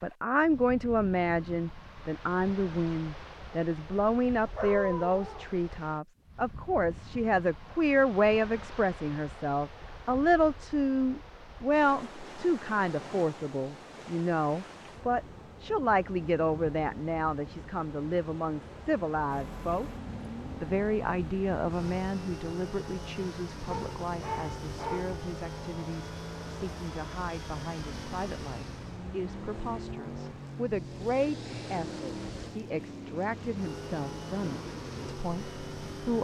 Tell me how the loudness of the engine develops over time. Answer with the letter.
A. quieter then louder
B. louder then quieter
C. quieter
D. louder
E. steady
E.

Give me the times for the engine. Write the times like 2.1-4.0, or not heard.
19.3-36.1.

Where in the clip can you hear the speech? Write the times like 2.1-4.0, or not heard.
0.0-19.9, 20.6-36.1.